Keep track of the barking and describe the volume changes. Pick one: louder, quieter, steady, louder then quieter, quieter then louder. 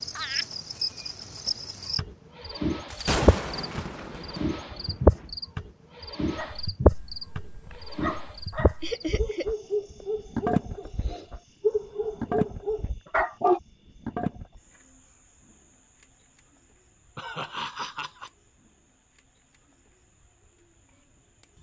louder.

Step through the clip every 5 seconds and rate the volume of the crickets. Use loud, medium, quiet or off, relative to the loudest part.
loud, loud, medium, quiet, quiet.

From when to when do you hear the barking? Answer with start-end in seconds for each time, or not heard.
6.3-13.6.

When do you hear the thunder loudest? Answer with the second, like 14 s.
3 s.